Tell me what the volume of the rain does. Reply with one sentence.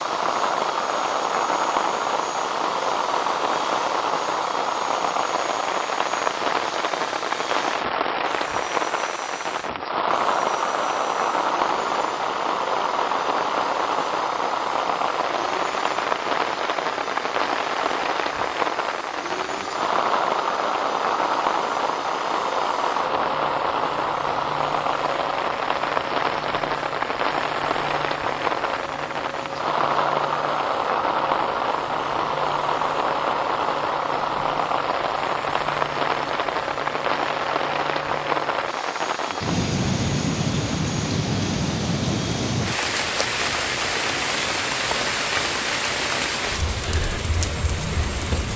The loudness of the rain stays about the same.